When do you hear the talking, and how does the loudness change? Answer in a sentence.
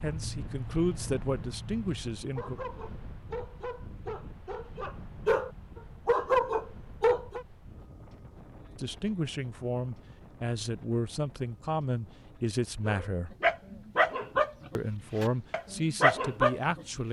The talking can be heard briefly from 0.0 to 2.6 s; from 8.8 to 13.3 s, at a steady volume; and briefly from 14.8 to 17.0 s.